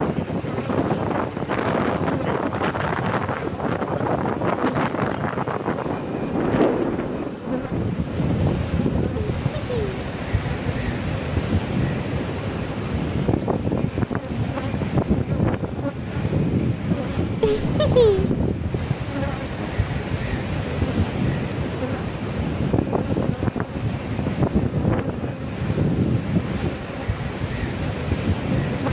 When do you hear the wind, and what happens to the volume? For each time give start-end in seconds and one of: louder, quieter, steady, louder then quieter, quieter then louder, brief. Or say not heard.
0.0-28.8 steady.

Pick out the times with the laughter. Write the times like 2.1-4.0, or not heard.
9.2-10.0, 17.4-18.4.